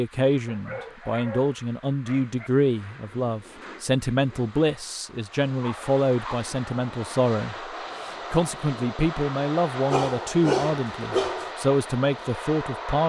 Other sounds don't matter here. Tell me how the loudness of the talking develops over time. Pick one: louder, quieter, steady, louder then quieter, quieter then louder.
steady.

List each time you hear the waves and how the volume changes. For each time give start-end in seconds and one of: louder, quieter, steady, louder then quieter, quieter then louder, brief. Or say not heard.
not heard.